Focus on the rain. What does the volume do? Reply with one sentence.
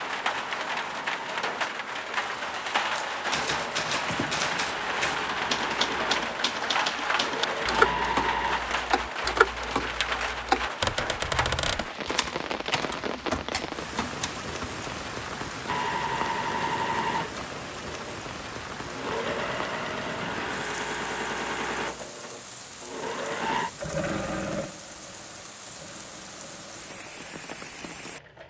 The loudness of the rain goes down.